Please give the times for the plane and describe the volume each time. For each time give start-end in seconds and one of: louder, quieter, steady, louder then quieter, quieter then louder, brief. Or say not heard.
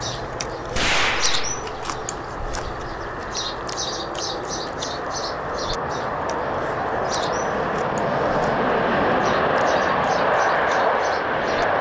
0.0-11.7 louder.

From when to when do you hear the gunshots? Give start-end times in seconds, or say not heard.
0.7-2.0.